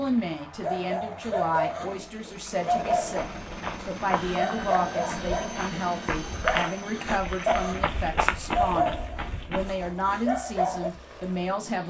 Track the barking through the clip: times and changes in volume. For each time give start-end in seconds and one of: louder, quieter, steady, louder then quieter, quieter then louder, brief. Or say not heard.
0.6-10.9 steady.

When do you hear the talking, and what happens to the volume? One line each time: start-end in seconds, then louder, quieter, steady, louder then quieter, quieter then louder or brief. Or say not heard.
0.0-11.8 steady.